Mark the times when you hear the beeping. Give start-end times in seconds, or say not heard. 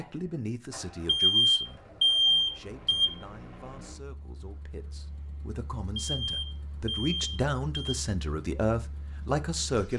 1.1-3.1, 6.0-8.0.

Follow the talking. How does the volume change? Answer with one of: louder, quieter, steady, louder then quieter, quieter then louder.
quieter then louder.